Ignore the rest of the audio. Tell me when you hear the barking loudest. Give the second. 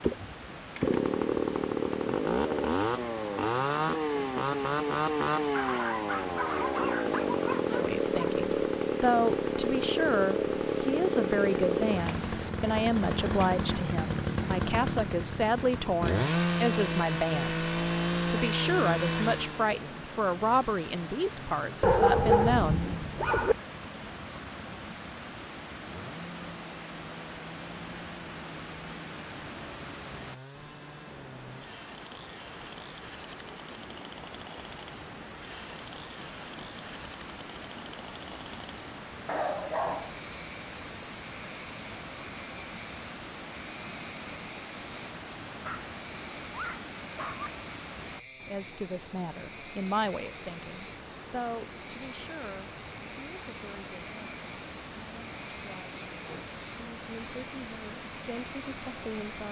22 s.